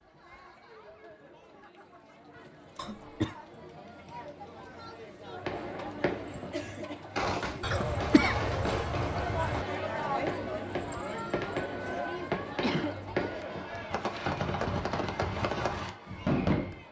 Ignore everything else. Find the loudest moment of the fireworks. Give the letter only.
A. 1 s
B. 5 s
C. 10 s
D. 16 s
D.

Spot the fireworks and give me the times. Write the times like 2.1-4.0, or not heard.
5.4-16.8.